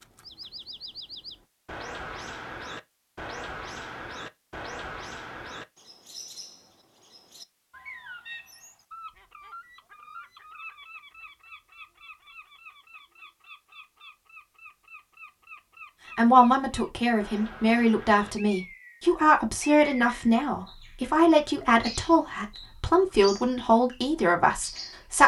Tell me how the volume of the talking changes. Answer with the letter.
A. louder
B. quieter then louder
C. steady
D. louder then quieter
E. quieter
C.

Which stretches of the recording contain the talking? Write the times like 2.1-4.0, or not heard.
16.1-25.2.